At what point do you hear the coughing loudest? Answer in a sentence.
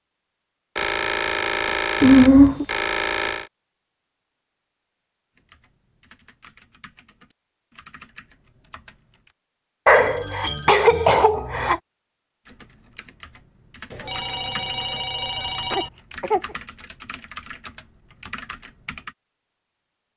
The loudest moment of the coughing is at 2 seconds.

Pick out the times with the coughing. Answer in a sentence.
The coughing can be heard from 2.0 to 2.6 s, from 9.8 to 11.8 s and from 15.7 to 16.4 s.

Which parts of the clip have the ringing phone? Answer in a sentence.
You can hear the ringing phone from 0.8 to 3.5 s, from 9.9 to 11.3 s and from 13.9 to 15.9 s.